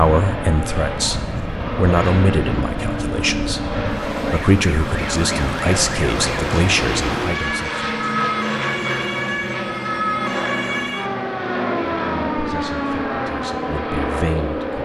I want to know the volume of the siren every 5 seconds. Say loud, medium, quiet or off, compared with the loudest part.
medium, loud, loud.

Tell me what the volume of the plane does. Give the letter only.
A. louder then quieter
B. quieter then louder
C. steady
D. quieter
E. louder
C.